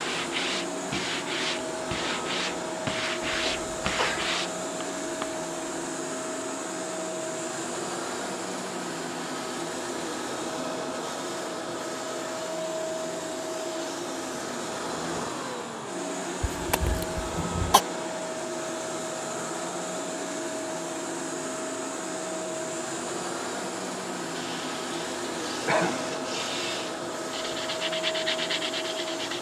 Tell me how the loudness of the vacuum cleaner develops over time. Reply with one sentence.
The volume of the vacuum cleaner stays about the same.